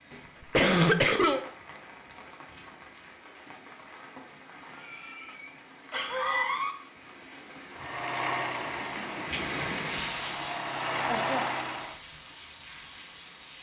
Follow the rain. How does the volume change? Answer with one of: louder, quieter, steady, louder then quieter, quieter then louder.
louder then quieter.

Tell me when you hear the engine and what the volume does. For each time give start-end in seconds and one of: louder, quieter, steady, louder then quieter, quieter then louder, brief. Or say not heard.
7.7-12.0 quieter then louder.